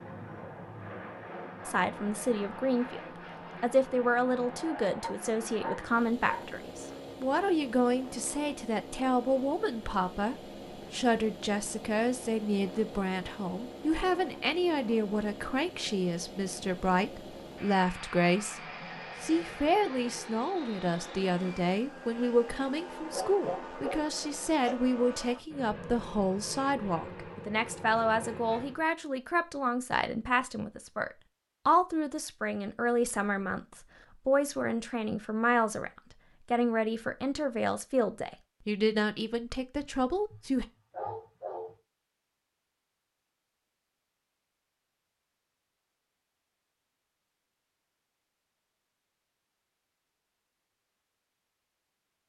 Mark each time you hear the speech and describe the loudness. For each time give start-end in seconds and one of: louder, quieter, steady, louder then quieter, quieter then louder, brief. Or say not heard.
1.6-40.6 steady.